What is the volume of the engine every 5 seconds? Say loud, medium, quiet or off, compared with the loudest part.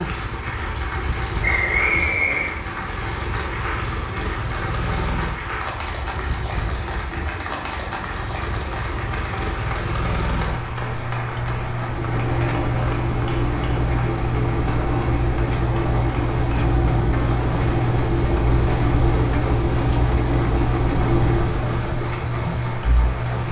medium, medium, loud, loud, loud.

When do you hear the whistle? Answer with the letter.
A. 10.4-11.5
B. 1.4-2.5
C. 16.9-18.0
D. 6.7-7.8
B.